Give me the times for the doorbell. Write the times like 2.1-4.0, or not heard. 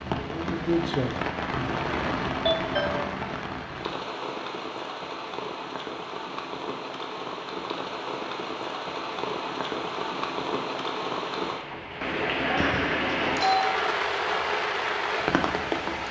2.5-3.1, 12.6-13.8.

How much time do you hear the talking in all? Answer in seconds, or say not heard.
2 s.